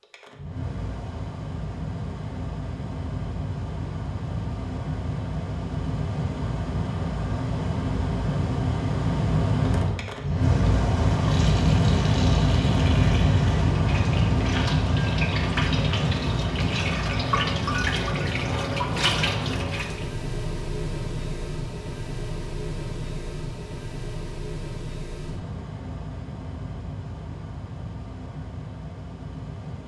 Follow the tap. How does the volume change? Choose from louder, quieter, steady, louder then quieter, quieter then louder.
louder.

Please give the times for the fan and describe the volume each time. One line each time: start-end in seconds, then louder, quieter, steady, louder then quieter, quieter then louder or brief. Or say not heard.
0.0-29.8 louder then quieter.